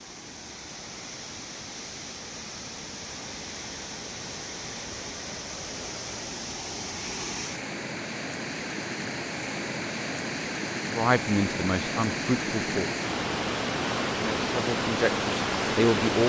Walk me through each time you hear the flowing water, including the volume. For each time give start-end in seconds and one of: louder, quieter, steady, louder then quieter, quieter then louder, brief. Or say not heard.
0.0-16.2 louder.